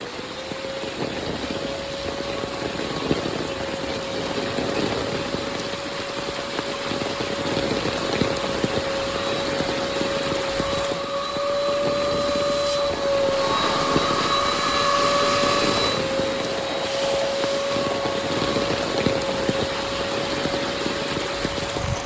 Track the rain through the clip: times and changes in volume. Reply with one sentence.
You can hear the rain from 0.0 to 22.0 s, at a steady volume.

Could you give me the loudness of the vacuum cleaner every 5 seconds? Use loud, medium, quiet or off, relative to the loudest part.
medium, medium, loud, loud, medium.